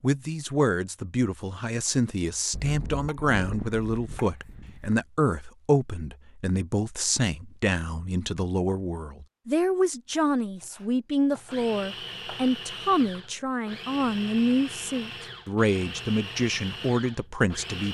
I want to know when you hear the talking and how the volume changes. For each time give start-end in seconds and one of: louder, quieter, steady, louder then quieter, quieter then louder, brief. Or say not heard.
0.0-17.9 steady.